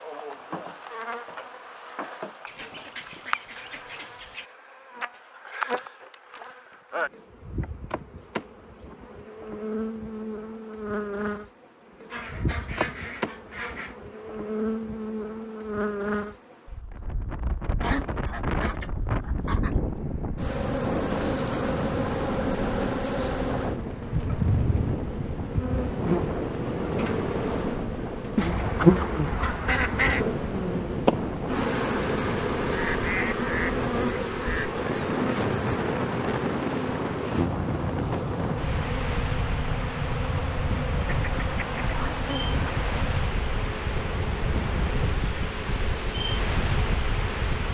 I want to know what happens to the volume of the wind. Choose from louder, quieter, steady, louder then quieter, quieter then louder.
steady.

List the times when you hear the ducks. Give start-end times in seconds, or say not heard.
2.5-4.5, 12.1-13.9, 17.8-19.8, 28.4-30.2, 32.7-34.7, 41.0-43.0.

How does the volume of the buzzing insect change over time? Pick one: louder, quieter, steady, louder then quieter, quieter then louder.
louder then quieter.